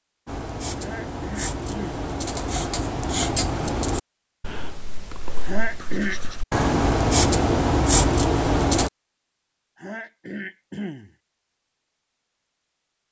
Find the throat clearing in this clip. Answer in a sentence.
You can hear the throat clearing from 0.8 to 2.0 s, from 5.5 to 6.2 s and from 9.8 to 11.1 s.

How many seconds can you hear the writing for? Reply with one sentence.
The writing can be heard for 9 seconds in total.